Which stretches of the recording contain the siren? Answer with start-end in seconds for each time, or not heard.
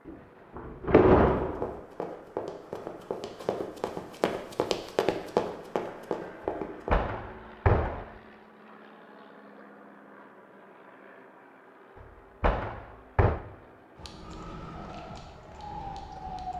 13.9-16.5.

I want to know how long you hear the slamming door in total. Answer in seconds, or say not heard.
4 s.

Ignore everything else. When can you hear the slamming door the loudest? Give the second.
1 s.